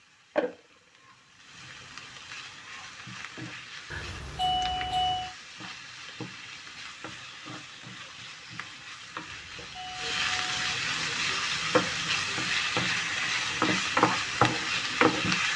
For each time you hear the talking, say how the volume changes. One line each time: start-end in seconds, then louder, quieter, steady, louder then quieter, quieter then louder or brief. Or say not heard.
not heard.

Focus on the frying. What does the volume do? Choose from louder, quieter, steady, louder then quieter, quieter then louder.
louder.